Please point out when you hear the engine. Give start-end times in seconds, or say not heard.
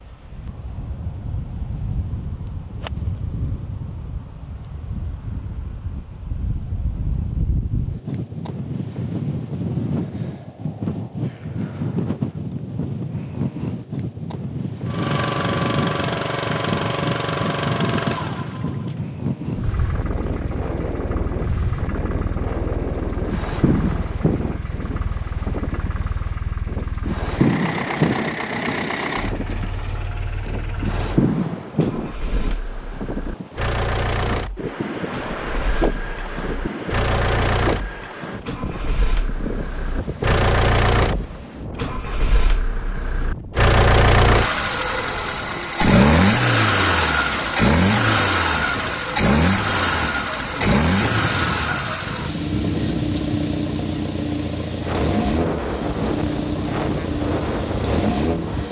14.8-58.6.